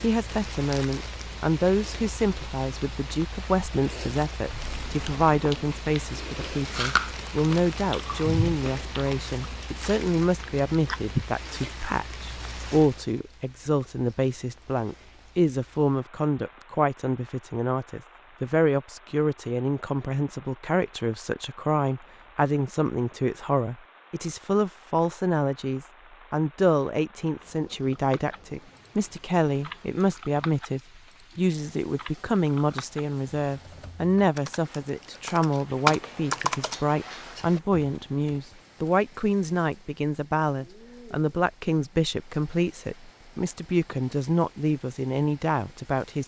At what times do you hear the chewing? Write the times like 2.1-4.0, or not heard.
4.5-11.1.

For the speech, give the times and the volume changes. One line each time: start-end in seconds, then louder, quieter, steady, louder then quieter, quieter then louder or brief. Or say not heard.
0.0-46.2 steady.